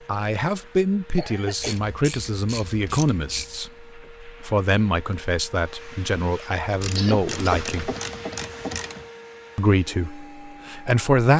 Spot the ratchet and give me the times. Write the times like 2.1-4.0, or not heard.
1.6-3.6, 6.8-9.1.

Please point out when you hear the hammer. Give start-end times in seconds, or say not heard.
not heard.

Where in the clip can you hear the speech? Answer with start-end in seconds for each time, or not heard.
0.1-7.9, 9.6-11.3.